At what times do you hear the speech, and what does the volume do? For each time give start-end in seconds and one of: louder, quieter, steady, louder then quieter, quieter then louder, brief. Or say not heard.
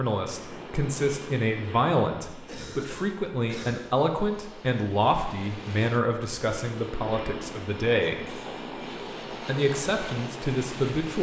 0.0-8.4 steady
9.3-11.1 brief.